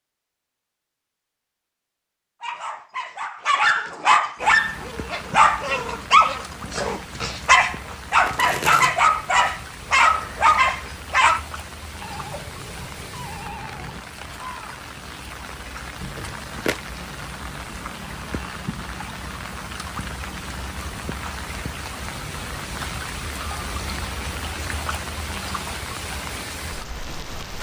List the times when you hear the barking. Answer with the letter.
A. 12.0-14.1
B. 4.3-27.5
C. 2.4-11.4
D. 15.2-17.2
C.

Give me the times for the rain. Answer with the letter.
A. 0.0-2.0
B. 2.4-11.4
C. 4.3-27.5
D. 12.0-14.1
C.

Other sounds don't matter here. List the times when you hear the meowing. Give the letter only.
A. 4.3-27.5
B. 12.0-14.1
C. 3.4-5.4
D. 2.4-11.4
B.